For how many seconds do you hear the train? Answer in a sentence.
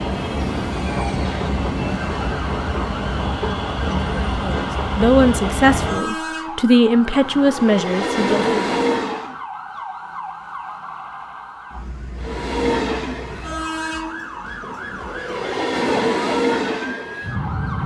The train can be heard for 15 seconds in total.